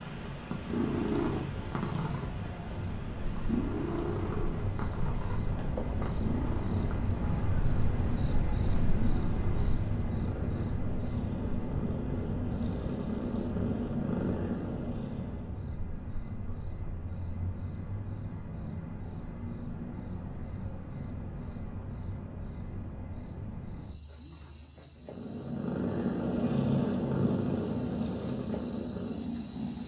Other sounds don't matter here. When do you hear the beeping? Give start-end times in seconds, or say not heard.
not heard.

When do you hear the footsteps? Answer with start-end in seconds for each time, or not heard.
not heard.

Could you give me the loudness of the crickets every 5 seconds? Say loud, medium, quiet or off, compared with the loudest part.
medium, loud, medium, medium, medium, medium.